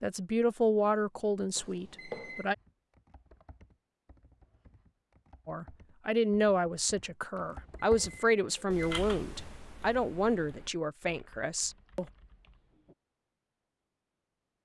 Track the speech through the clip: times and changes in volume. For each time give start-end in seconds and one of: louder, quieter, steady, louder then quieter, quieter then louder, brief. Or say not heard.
0.0-2.5 brief
5.5-12.1 quieter.